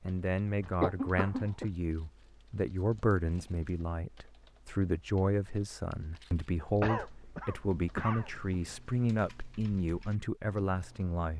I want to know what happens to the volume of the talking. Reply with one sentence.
The loudness of the talking stays about the same.